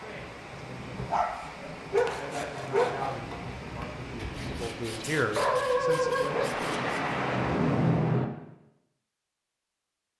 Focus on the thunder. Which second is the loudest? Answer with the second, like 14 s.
8 s.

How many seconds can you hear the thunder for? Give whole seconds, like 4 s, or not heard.
2 s.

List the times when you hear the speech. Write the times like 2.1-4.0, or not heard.
0.0-7.0.